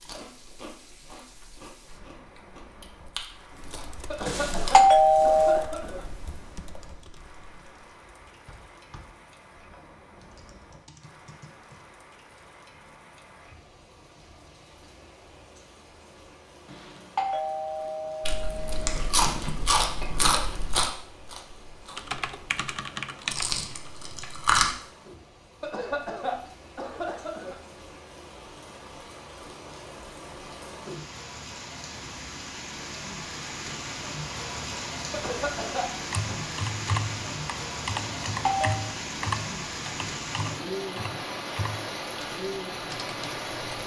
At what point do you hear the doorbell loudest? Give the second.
5 s.